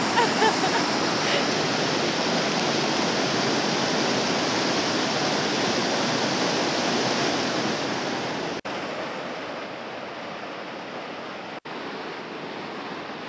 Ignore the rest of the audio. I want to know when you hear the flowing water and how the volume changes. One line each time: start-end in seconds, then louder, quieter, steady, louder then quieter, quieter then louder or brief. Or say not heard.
0.0-13.2 quieter.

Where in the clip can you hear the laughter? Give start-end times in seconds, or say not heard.
0.1-1.5.